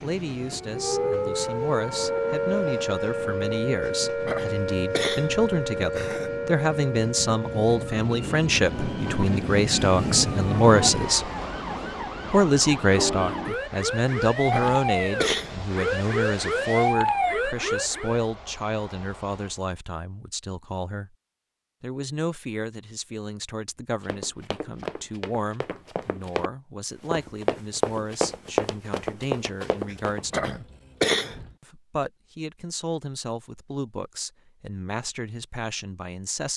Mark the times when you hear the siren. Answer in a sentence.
The siren can be heard from 0.3 to 18.2 s.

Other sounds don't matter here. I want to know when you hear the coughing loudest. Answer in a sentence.
The loudest moment of the coughing is at 31 seconds.